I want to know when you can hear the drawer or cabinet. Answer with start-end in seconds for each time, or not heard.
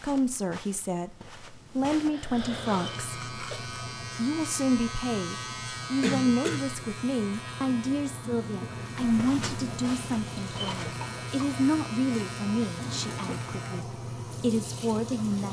12.8-13.4.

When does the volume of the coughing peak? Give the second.
6 s.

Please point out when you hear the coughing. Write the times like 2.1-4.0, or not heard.
1.9-3.6, 6.0-6.7, 10.7-11.4.